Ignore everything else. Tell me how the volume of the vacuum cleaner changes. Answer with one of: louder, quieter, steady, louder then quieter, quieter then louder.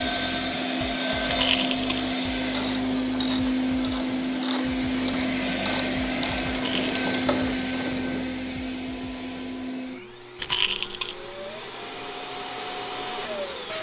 quieter.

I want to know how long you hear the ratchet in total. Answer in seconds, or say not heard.
6 s.